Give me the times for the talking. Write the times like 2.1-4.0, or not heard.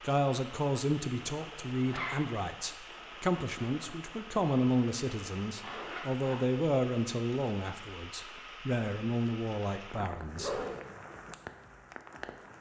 0.0-10.7.